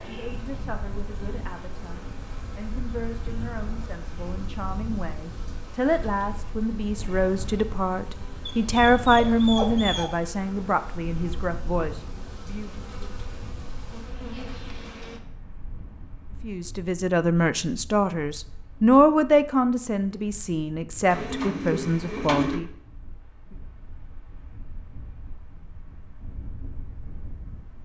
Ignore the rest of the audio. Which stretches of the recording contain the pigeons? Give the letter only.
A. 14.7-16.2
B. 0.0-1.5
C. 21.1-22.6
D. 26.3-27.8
C.